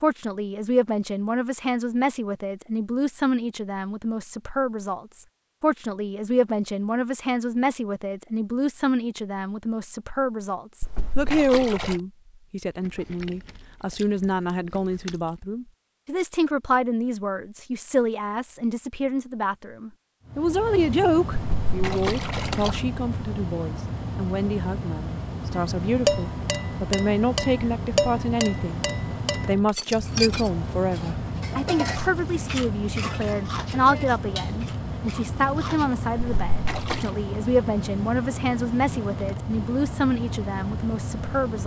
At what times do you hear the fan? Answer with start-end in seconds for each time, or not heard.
20.2-41.6.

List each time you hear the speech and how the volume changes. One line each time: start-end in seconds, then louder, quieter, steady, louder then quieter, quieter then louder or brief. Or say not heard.
0.0-28.8 steady
29.4-41.6 steady.